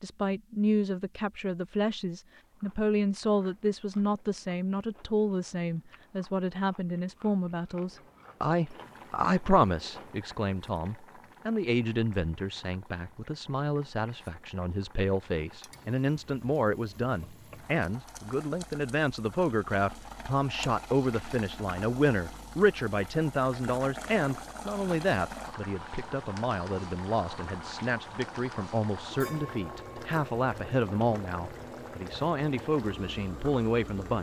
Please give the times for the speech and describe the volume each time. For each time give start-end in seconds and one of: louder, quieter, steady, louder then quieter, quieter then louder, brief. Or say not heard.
0.0-34.1 steady.